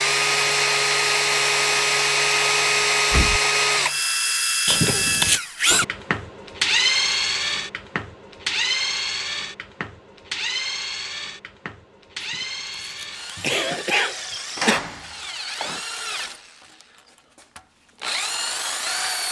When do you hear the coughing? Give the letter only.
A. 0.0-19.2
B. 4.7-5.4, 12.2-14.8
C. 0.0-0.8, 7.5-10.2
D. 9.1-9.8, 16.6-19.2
B.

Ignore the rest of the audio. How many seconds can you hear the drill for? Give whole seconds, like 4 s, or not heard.
19 s.